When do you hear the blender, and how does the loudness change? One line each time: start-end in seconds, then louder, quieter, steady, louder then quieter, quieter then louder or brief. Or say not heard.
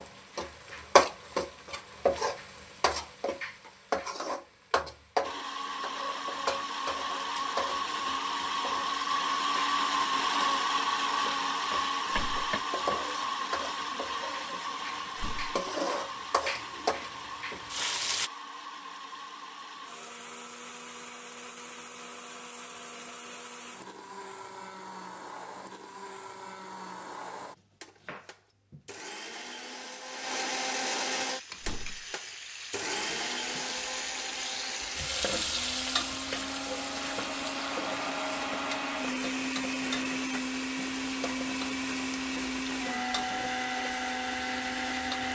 5.2-45.3 quieter then louder.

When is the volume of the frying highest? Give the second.
1 s.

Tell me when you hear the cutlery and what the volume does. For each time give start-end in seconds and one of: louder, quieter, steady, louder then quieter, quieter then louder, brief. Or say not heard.
not heard.